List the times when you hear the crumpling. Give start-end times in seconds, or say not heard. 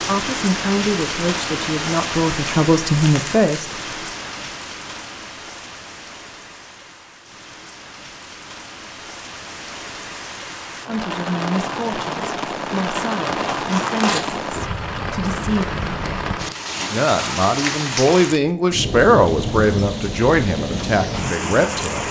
3.0-3.7, 13.5-14.4.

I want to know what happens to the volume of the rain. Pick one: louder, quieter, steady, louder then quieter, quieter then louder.
quieter then louder.